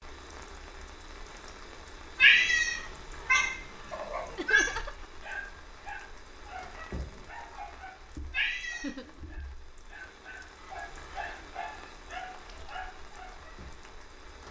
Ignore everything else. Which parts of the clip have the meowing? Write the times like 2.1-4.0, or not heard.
2.1-4.8, 8.3-9.2.